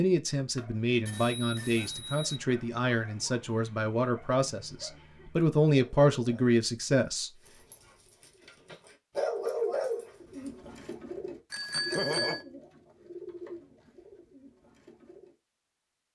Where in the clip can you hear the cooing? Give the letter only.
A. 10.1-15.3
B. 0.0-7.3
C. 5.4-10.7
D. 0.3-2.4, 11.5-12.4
A.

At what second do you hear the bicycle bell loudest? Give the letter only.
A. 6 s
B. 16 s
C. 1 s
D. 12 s
D.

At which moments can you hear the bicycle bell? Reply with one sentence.
The bicycle bell can be heard from 0.3 to 2.4 s and from 11.5 to 12.4 s.